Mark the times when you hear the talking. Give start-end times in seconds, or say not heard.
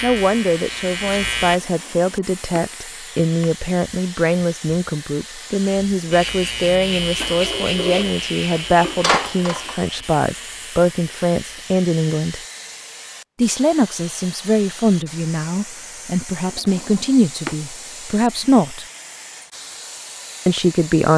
0.0-12.4, 13.3-18.9, 20.4-21.1.